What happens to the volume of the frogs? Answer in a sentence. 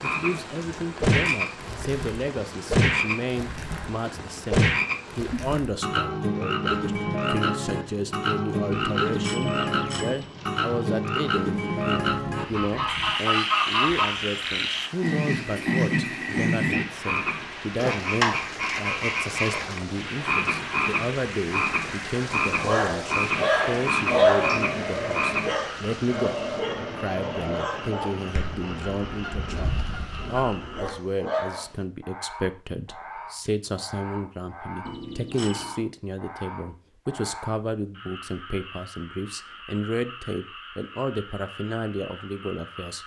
The volume of the frogs goes down.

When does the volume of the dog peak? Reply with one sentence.
The loudest moment of the dog is at 24 seconds.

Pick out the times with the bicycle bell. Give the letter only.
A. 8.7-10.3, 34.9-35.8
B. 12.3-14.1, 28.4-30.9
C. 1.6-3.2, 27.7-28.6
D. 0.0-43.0
A.